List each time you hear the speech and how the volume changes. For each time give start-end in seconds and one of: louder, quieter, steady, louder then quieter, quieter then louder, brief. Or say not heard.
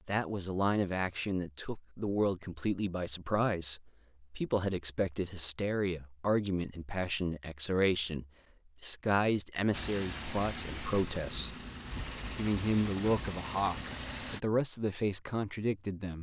0.1-16.1 steady.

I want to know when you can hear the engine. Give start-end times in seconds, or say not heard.
9.7-14.4.